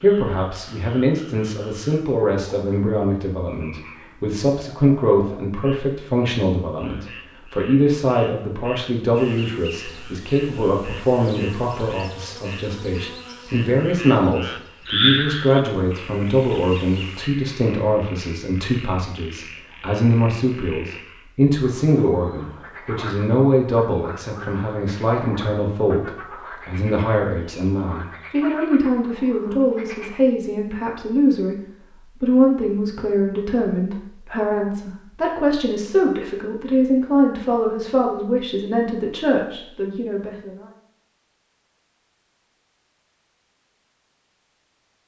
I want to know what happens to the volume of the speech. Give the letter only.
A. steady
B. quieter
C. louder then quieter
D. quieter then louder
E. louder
A.